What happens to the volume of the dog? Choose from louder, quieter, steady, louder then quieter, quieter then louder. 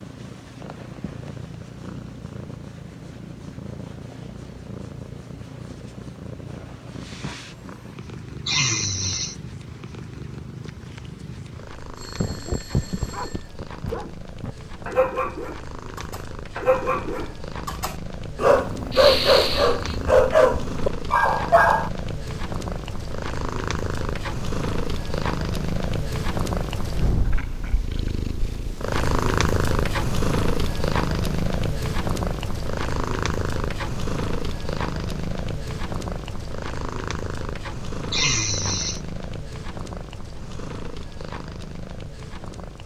louder.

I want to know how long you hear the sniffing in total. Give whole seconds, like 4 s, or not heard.
3 s.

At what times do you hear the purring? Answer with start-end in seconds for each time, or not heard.
0.0-42.8.